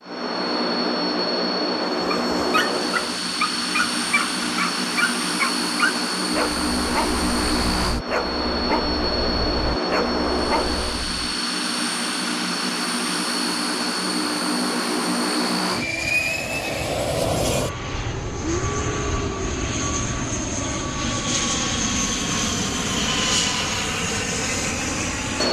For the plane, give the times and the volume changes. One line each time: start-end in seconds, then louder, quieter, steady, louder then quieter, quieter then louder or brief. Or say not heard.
0.0-25.4 steady.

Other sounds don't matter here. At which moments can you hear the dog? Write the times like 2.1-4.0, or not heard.
1.9-11.1.